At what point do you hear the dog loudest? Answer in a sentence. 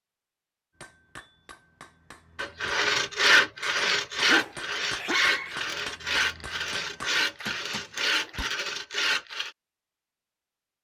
The volume of the dog peaks at 5 seconds.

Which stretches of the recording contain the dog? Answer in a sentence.
The dog can be heard from 3.6 to 5.6 s.